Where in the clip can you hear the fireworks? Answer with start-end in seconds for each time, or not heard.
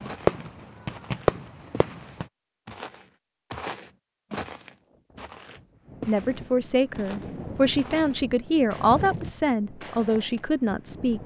0.0-2.2.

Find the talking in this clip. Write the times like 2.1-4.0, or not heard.
6.0-11.2.